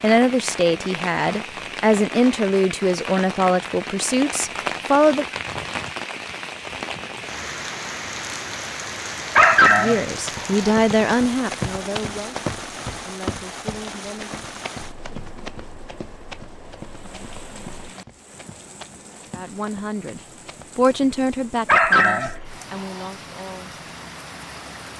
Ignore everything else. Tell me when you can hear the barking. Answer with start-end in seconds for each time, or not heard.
9.3-10.7, 21.6-23.1.